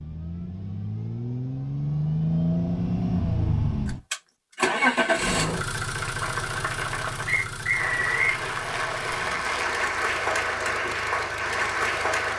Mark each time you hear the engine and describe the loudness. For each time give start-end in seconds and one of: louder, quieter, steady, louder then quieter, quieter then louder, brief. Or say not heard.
0.0-12.3 quieter.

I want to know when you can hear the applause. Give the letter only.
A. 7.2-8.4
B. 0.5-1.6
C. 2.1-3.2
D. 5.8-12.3
D.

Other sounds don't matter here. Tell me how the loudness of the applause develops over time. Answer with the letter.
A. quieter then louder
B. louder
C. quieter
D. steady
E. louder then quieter
B.